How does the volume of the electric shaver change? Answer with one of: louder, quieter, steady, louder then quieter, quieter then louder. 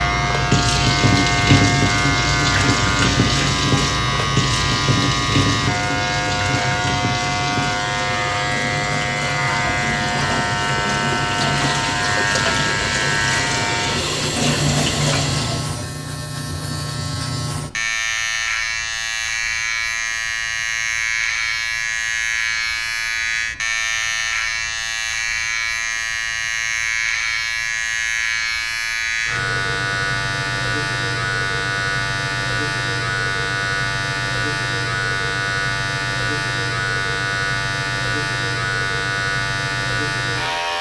steady.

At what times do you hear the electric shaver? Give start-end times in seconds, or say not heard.
0.0-40.7.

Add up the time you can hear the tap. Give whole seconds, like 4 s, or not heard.
16 s.